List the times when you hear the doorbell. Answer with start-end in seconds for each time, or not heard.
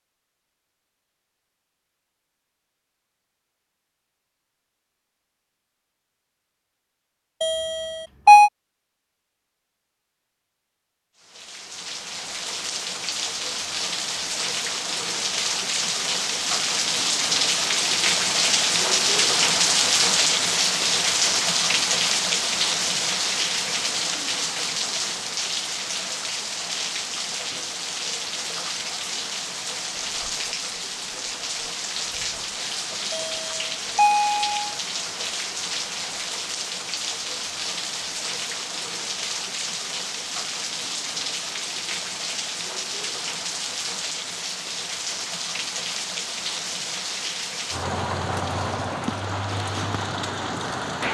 7.4-8.5, 33.1-34.8.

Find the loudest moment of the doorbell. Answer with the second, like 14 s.
8 s.